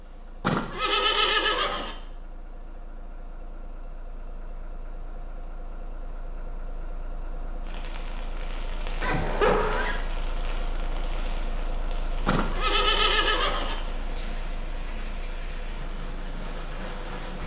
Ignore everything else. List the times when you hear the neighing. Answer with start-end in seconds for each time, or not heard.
0.4-1.9, 9.0-10.0, 12.2-14.2.